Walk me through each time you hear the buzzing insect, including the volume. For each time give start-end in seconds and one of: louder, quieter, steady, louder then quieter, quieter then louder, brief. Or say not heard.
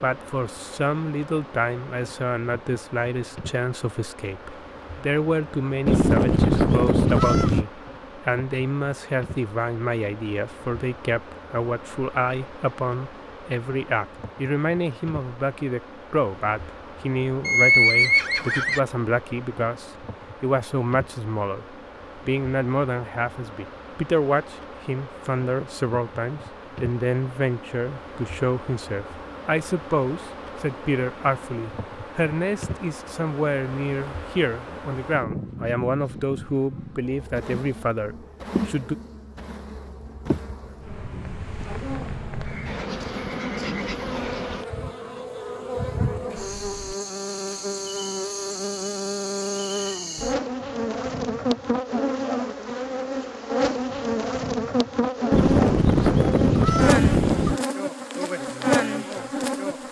0.0-59.8 louder.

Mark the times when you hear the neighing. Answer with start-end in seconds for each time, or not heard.
17.4-18.8, 42.4-44.0.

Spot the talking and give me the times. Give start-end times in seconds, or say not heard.
0.0-39.0, 58.4-59.8.